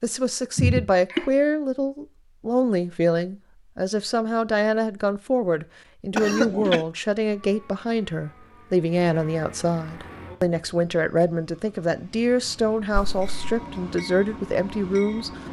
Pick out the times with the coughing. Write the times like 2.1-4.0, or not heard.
0.6-1.2, 6.1-6.8, 12.9-13.6.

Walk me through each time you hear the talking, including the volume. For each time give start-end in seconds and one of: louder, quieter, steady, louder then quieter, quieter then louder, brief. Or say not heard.
0.0-15.4 steady.